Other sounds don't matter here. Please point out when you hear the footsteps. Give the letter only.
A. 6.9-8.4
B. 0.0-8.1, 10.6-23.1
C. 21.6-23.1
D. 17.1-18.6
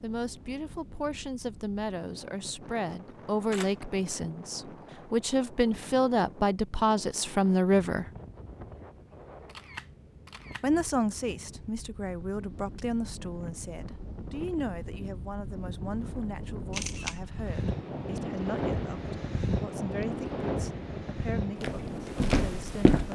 C.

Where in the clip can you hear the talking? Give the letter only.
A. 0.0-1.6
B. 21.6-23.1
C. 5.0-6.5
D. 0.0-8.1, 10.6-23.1
D.